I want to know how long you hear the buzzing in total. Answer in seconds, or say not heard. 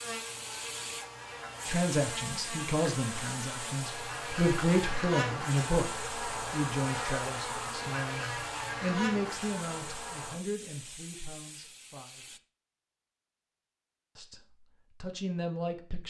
10 s.